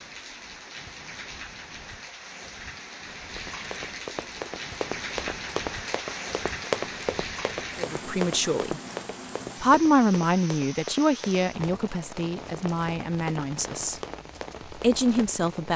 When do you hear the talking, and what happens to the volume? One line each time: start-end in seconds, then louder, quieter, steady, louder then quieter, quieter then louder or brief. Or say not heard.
7.8-8.8 brief
9.6-14.0 quieter
14.7-15.7 brief.